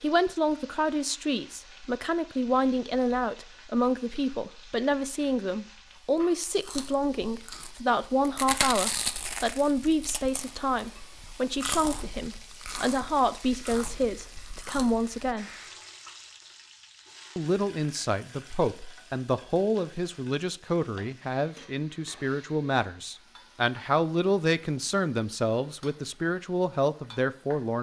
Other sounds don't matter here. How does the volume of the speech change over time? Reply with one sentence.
The loudness of the speech stays about the same.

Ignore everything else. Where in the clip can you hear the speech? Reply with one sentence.
The speech can be heard from 0.0 to 15.4 s and from 17.4 to 27.7 s.